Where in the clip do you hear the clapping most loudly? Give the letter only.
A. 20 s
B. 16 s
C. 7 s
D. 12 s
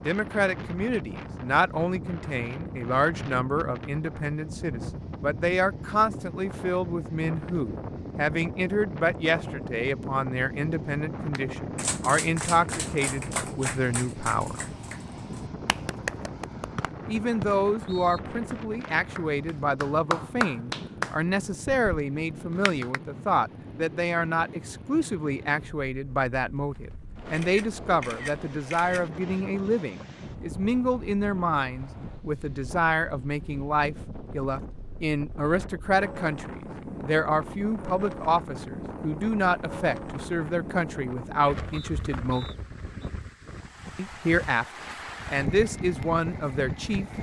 A.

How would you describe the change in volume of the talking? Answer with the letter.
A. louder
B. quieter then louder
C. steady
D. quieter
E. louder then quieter
C.